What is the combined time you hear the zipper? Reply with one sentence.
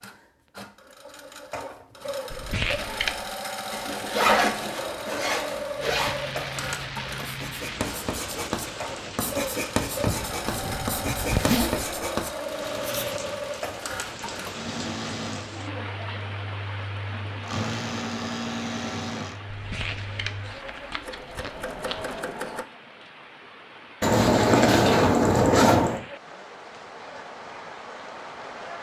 The zipper can be heard for 6 seconds in total.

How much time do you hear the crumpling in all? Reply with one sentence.
You can hear the crumpling for 4 seconds altogether.